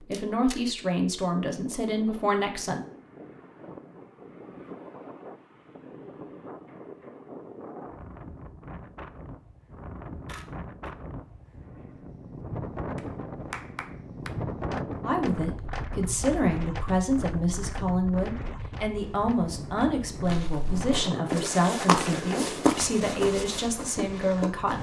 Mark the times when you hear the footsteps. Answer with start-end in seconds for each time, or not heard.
20.2-24.7.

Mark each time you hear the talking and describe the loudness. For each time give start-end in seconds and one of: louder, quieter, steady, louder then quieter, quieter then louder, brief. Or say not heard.
0.1-2.8 brief
15.0-24.7 steady.